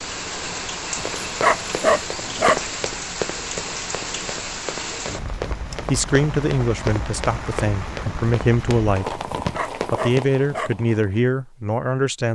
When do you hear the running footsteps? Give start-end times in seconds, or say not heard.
0.9-10.3.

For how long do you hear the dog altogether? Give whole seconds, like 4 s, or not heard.
3 s.